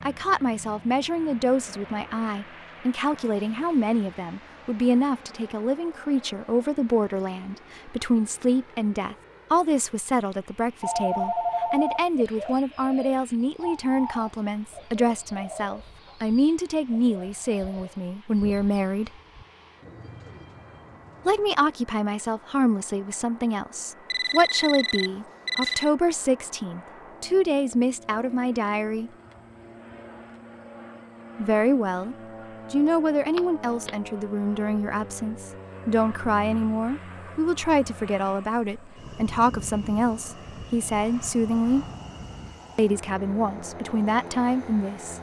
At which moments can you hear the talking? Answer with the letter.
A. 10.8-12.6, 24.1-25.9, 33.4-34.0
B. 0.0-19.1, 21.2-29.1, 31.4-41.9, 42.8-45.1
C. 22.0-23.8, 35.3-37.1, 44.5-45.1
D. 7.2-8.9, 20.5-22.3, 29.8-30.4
B.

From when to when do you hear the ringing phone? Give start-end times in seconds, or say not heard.
10.8-12.6, 24.1-25.9, 33.4-34.0.